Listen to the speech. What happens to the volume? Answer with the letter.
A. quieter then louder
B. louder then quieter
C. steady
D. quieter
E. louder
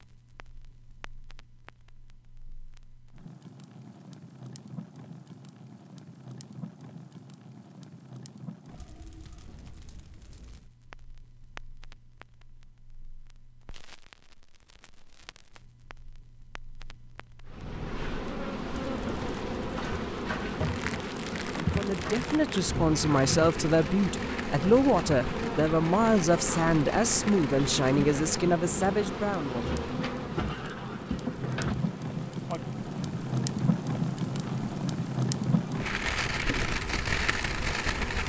C.